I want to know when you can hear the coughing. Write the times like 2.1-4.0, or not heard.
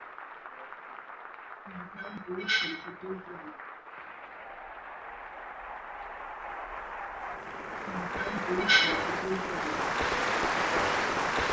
1.6-3.5, 7.8-9.7.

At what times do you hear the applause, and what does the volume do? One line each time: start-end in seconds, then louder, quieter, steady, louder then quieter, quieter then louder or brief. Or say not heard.
0.0-11.4 louder.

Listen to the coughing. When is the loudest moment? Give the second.
9 s.